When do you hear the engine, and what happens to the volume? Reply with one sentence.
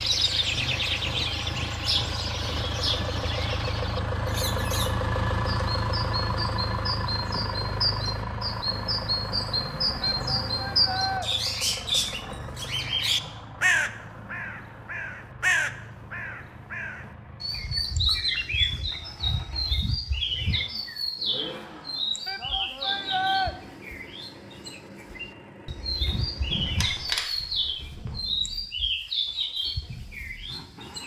You can hear the engine from 0.0 to 31.0 s, getting quieter.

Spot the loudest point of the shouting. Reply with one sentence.
The loudest moment of the shouting is at 23 seconds.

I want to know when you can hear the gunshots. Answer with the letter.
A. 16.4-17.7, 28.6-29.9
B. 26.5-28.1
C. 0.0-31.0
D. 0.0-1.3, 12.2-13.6
B.